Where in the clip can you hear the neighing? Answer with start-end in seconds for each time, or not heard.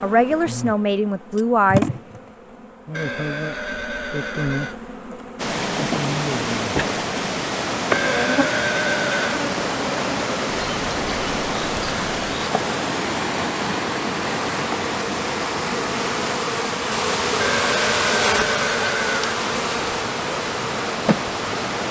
2.9-4.8, 7.9-9.4, 17.4-19.4.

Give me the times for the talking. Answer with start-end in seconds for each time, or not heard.
0.0-1.9.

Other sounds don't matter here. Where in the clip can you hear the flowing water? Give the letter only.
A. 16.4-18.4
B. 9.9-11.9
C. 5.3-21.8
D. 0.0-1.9
C.